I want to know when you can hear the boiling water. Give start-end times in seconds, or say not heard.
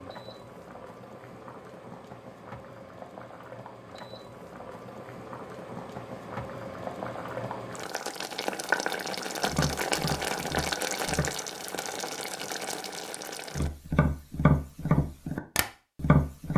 0.0-13.7.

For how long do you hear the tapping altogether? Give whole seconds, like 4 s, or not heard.
5 s.